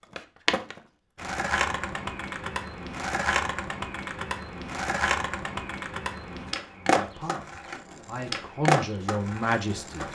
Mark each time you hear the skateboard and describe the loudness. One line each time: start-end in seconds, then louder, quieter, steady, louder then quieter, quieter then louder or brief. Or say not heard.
0.1-10.1 steady.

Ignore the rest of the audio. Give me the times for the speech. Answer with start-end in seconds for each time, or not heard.
6.8-10.1.